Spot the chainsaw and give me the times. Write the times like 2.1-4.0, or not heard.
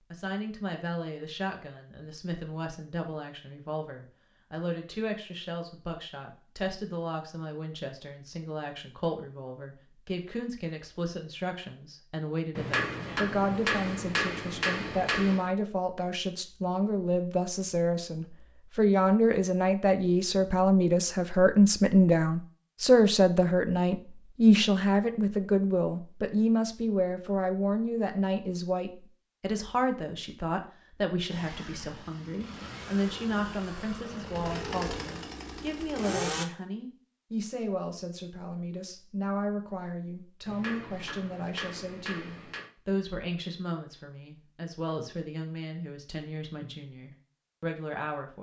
31.2-36.5.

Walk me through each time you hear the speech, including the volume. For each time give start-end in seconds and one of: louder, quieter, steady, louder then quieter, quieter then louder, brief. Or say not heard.
0.1-48.3 louder then quieter.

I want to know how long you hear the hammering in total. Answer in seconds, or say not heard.
5 s.